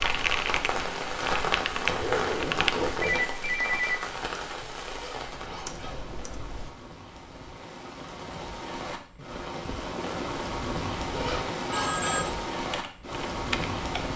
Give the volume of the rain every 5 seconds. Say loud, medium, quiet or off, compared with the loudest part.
loud, medium, loud.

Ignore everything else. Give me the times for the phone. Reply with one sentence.
You can hear the phone from 3.0 to 4.0 s and from 11.7 to 12.3 s.